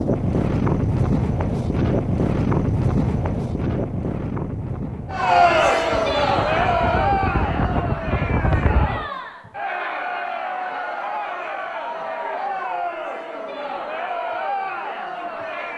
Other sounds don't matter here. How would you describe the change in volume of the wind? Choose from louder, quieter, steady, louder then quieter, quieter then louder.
quieter then louder.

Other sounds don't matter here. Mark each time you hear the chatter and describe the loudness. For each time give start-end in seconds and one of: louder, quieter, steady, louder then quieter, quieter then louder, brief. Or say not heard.
5.1-15.7 quieter.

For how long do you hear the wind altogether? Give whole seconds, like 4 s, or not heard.
9 s.